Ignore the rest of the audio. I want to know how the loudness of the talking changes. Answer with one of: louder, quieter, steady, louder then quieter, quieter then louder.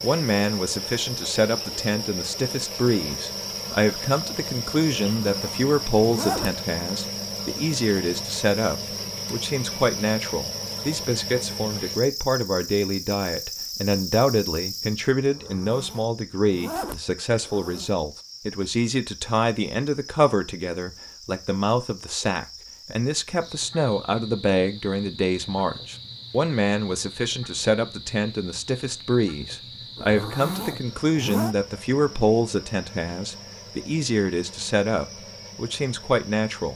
steady.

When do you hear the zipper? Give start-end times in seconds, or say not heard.
5.0-6.5, 15.3-17.9, 29.9-31.6.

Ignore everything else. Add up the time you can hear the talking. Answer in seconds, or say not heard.
37 s.